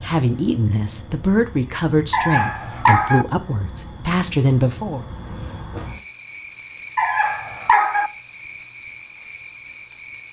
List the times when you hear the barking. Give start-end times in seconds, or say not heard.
2.1-3.2, 7.0-8.1.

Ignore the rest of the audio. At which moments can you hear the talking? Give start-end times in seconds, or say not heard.
0.0-5.0.